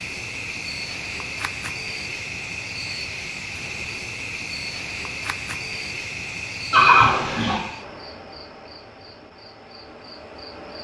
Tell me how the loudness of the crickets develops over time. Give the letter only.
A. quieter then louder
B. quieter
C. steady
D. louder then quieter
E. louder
B.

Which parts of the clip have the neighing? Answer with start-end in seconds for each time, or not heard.
6.7-7.6.